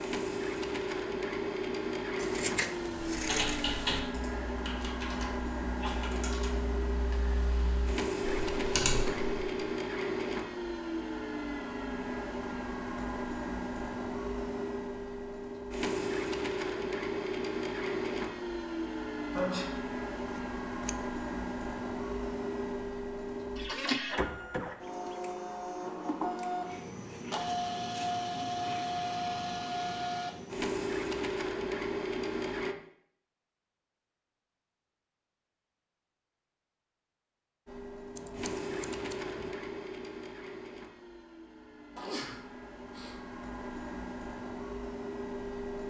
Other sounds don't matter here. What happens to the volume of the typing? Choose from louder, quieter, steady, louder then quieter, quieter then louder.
quieter then louder.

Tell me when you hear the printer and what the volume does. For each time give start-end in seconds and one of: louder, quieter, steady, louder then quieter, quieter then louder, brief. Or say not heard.
0.0-32.8 steady
37.6-45.8 quieter then louder.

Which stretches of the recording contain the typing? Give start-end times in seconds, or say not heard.
3.1-9.7.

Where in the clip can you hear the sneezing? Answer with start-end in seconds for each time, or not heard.
5.8-6.2, 19.4-19.9, 41.9-43.1.